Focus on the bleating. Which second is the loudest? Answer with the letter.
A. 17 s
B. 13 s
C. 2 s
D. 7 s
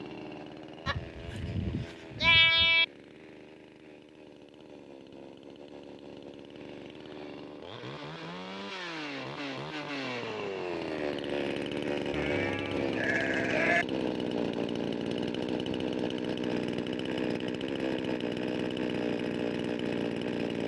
C.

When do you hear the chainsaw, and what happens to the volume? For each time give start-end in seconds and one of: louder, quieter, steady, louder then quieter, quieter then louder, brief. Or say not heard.
0.0-20.6 louder.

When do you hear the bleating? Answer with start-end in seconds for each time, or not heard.
0.8-2.9, 12.1-13.8.